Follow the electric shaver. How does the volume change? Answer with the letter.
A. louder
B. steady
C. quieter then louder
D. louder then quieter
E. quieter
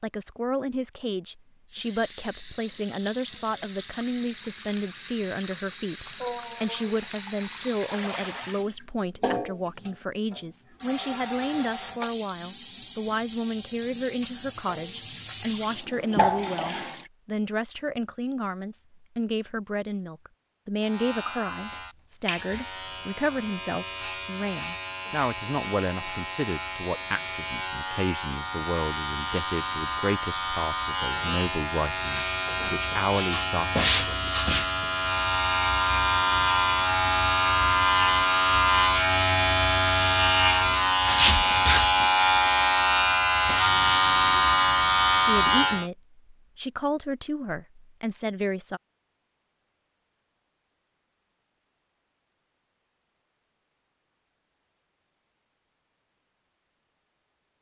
A.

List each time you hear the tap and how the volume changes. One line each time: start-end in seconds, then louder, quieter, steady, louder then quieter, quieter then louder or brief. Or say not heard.
1.7-17.1 louder.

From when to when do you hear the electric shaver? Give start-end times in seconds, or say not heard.
20.8-45.9.